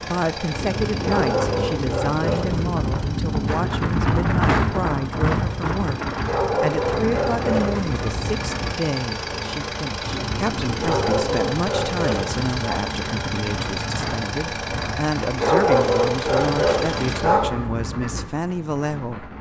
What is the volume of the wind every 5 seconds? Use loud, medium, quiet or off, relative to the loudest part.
loud, loud, medium, medium.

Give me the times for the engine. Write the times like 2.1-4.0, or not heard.
0.0-17.3.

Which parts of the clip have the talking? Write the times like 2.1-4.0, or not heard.
0.0-19.3.